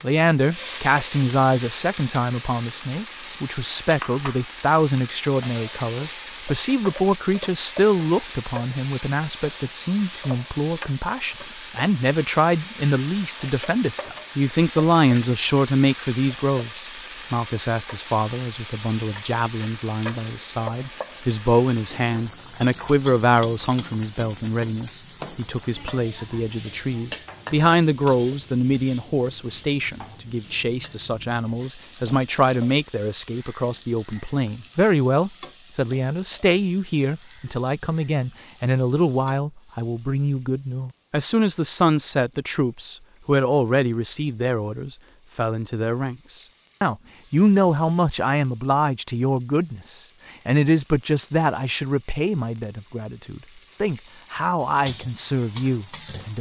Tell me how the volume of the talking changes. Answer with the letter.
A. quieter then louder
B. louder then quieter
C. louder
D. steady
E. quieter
D.